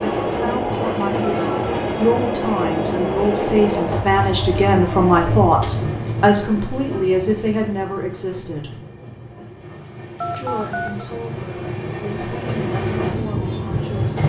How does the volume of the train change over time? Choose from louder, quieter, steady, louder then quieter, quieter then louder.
quieter then louder.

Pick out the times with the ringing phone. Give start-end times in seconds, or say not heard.
1.2-1.9, 10.2-11.1.